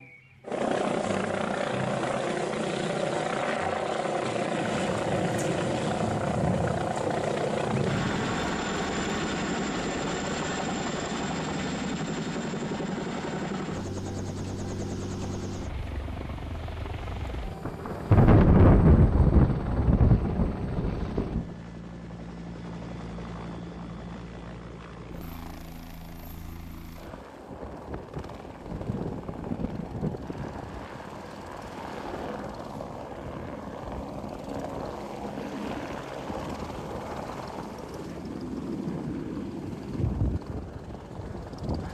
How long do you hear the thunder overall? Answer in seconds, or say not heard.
9 s.